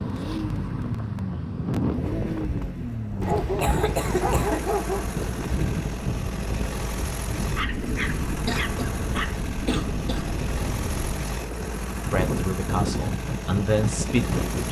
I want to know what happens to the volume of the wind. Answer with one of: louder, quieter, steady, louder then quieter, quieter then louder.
steady.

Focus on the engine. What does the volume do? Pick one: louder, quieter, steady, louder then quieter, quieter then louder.
steady.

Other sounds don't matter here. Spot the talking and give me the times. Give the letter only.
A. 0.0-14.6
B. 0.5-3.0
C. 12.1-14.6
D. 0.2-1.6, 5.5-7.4
C.